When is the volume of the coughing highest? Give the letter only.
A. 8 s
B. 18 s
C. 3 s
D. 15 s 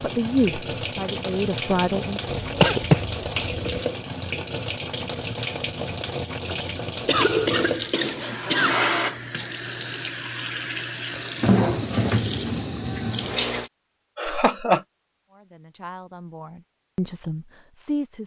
C.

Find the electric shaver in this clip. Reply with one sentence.
You can't hear the electric shaver here.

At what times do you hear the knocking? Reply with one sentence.
You can't hear the knocking here.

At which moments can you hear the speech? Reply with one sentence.
You can hear the speech from 0.0 to 2.3 s and from 15.3 to 18.2 s.